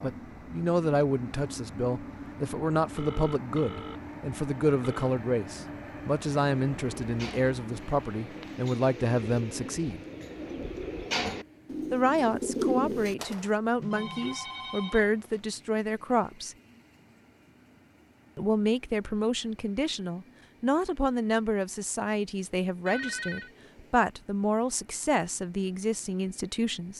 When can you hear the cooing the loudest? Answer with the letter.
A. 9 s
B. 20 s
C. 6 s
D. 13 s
D.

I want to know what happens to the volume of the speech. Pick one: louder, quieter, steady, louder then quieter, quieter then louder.
steady.